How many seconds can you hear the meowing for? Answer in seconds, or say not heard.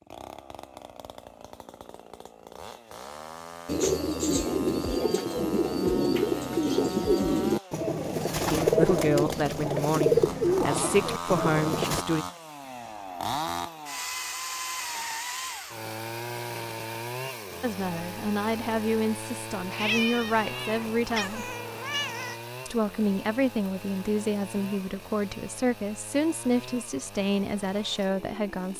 3 s.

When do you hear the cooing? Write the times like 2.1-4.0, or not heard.
3.6-12.1.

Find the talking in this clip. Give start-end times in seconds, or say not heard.
8.5-12.2, 17.6-21.5, 22.6-28.7.